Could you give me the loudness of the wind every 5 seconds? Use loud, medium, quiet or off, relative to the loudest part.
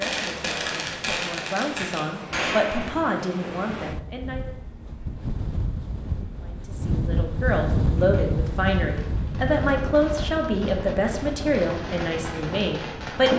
medium, loud, medium.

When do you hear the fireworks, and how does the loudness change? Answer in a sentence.
The fireworks can be heard briefly from 0.0 to 2.9 s; and from 8.0 to 13.3 s, getting louder.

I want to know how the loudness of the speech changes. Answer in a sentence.
The volume of the speech goes up.